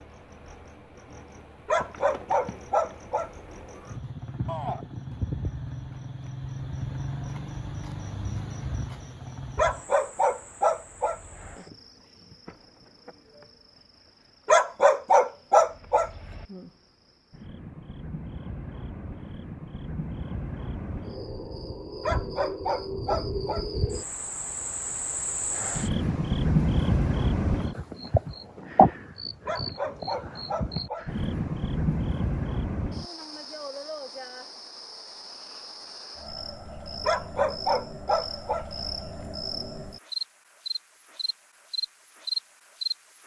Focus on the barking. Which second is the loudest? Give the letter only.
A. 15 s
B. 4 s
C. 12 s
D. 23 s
A.